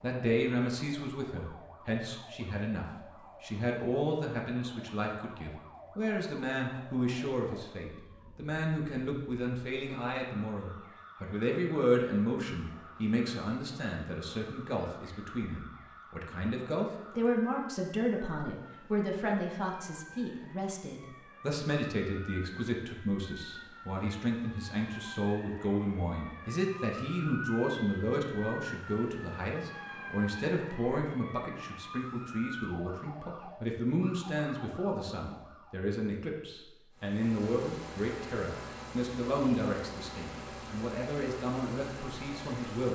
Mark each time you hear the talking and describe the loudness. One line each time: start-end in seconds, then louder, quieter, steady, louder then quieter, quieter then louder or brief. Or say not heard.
0.0-42.9 steady.